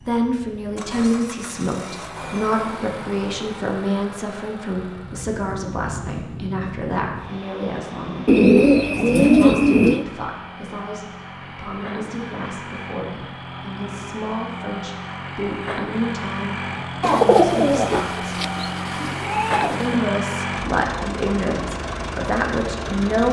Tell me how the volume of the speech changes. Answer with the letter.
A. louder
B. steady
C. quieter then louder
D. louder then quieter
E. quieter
C.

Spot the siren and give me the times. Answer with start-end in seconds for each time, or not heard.
not heard.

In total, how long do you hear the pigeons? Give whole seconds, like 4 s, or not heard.
5 s.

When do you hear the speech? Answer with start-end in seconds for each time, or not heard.
0.1-18.2, 19.8-23.2.